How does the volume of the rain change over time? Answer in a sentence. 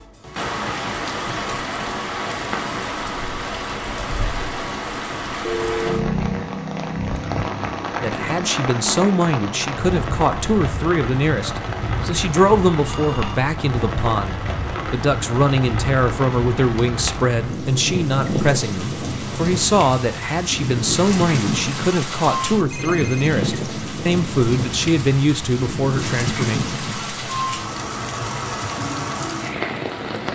The volume of the rain stays about the same.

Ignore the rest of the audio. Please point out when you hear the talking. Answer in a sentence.
The talking can be heard from 8.0 to 26.6 s.